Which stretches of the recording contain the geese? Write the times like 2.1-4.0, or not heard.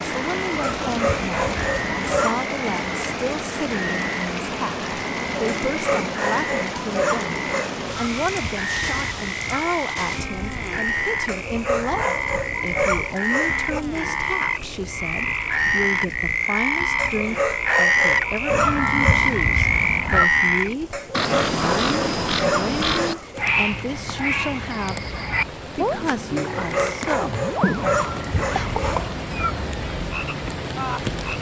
0.5-2.3, 7.8-9.7, 18.5-20.2, 27.8-29.6.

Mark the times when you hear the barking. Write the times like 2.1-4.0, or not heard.
0.8-2.5, 5.5-7.8, 11.2-13.8, 16.9-19.2, 20.9-23.4, 26.4-29.1.